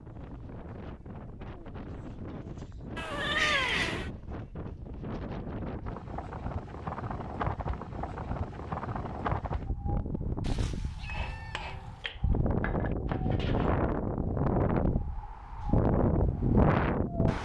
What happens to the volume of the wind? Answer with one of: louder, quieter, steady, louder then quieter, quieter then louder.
louder.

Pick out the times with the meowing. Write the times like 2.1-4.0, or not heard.
3.0-4.1, 10.4-12.1.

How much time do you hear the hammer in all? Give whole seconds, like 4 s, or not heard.
3 s.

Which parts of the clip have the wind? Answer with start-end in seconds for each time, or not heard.
0.0-17.4.